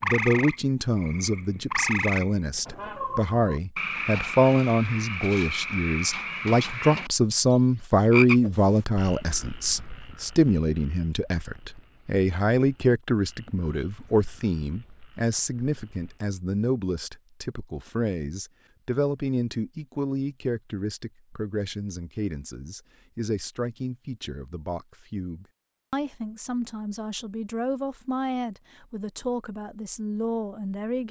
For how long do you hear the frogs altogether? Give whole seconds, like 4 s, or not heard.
16 s.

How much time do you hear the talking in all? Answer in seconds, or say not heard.
31 s.